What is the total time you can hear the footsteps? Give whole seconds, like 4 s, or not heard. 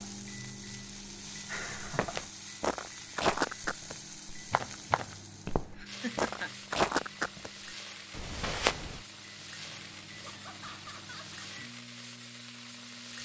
7 s.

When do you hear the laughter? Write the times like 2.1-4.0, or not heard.
1.5-2.2, 5.8-6.5, 10.2-11.4.